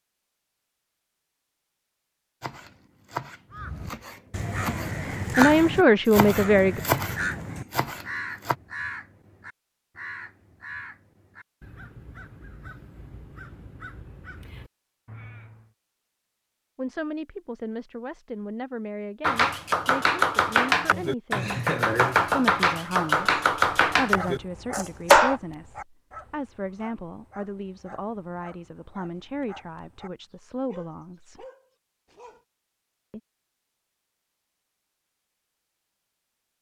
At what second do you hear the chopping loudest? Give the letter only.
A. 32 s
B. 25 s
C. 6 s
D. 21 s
B.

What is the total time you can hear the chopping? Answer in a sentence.
You can hear the chopping for 12 seconds altogether.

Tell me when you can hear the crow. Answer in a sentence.
The crow can be heard from 3.5 to 15.7 s.